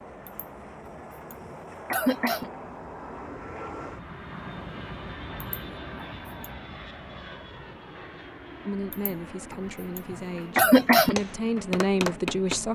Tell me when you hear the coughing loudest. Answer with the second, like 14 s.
11 s.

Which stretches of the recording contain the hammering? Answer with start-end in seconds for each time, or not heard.
11.2-12.7.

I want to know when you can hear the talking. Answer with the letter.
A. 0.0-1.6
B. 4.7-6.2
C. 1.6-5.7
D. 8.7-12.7
D.